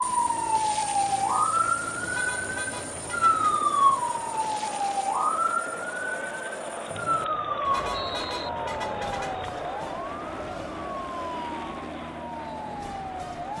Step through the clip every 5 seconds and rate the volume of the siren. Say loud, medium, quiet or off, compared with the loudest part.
loud, medium, quiet.